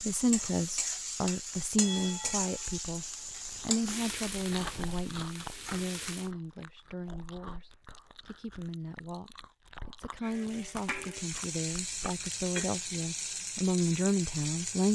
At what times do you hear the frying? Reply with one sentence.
You can hear the frying from 0.0 to 6.3 s and from 10.2 to 14.8 s.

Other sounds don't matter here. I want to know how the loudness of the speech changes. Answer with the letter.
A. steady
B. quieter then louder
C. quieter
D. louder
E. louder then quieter
B.